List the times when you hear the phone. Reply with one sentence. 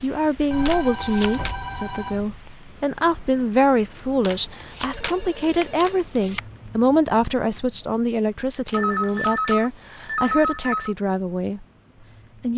You can hear the phone from 0.5 to 2.4 s, from 4.9 to 6.1 s and from 8.7 to 10.9 s.